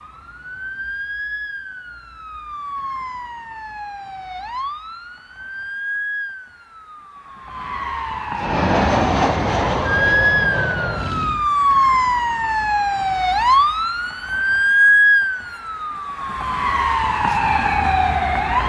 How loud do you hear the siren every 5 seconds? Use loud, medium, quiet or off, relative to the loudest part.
quiet, medium, loud, loud.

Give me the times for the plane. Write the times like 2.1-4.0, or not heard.
8.3-11.4.